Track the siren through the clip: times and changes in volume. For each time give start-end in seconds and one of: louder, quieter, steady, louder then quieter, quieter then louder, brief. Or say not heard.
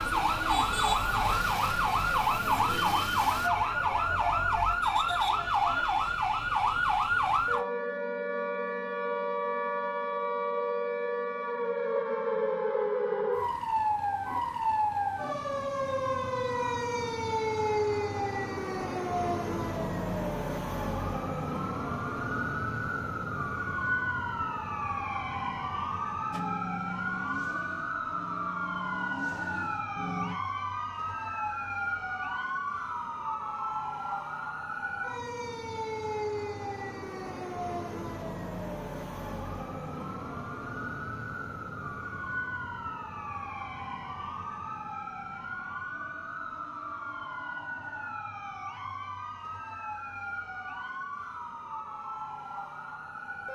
0.0-53.5 quieter.